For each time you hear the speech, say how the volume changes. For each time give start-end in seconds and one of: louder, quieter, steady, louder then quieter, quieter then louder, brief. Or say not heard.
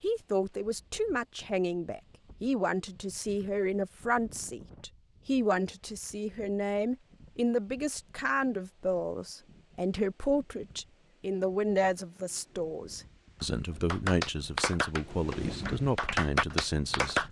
0.0-17.2 steady.